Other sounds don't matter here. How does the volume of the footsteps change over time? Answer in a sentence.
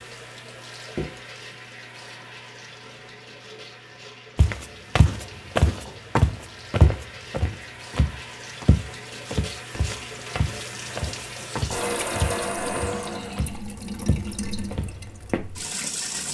The volume of the footsteps goes down.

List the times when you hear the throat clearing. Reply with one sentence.
You can't hear the throat clearing here.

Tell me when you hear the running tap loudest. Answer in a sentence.
The volume of the running tap peaks at 12 seconds.